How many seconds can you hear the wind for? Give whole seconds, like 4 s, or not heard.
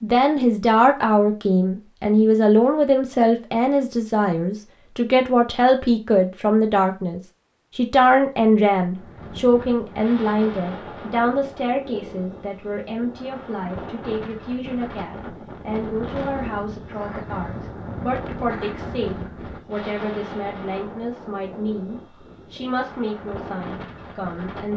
16 s.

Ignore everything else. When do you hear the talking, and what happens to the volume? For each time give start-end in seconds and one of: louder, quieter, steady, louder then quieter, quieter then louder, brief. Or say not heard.
0.0-24.7 quieter.